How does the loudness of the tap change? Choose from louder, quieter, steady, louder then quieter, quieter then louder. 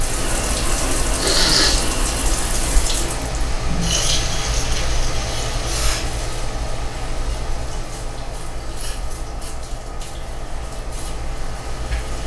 quieter.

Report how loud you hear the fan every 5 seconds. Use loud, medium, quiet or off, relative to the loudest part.
loud, loud, medium.